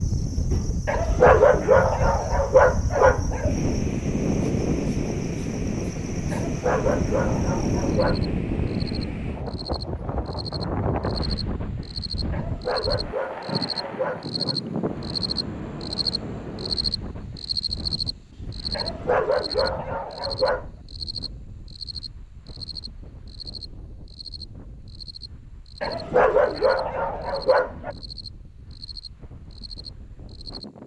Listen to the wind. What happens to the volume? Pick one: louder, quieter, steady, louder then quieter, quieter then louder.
quieter.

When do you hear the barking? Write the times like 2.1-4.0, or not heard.
0.8-3.5, 6.3-8.2, 12.3-14.6, 18.7-20.6, 25.8-27.9.